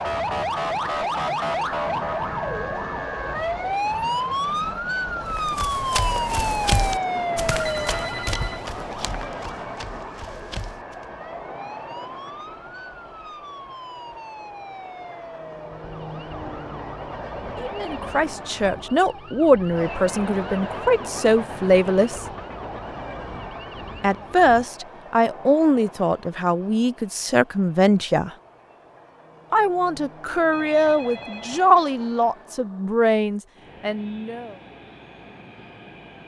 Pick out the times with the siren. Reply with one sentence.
You can hear the siren from 0.0 to 24.7 s.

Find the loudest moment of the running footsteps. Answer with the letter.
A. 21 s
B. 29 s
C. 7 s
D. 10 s
C.